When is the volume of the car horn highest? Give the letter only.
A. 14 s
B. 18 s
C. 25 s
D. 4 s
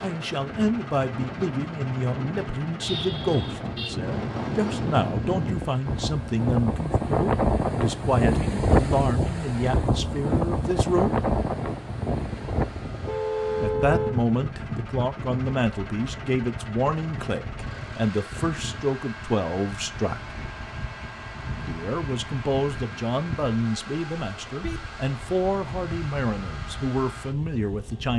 A.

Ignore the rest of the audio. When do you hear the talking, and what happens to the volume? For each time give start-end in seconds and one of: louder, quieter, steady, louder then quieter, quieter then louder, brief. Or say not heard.
0.0-11.2 steady
13.6-20.4 steady
21.6-28.1 steady.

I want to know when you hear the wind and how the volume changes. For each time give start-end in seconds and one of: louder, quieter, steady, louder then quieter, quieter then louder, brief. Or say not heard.
0.0-28.1 louder then quieter.